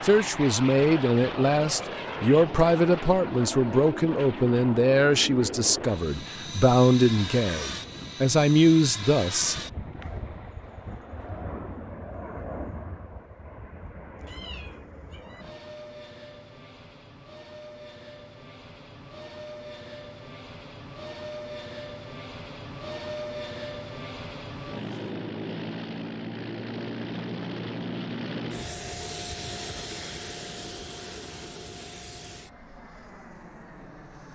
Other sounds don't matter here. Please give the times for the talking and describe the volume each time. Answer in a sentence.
You can hear the talking from 0.0 to 9.6 s, at a steady volume.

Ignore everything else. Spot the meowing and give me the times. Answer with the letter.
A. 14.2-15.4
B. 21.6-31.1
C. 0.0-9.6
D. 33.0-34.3
A.